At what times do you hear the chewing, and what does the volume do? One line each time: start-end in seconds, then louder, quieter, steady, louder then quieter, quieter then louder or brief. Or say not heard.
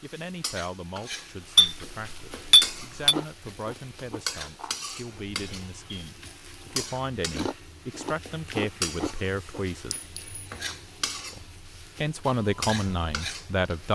3.1-9.7 quieter then louder.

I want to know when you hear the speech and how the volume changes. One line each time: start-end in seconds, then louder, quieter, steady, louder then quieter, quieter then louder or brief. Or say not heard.
0.0-9.9 louder
11.3-13.9 brief.